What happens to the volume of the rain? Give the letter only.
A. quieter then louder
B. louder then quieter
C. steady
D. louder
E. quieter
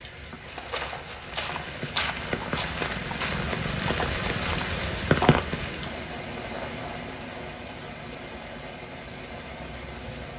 B.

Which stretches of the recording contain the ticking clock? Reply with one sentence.
The ticking clock can't be heard in this clip.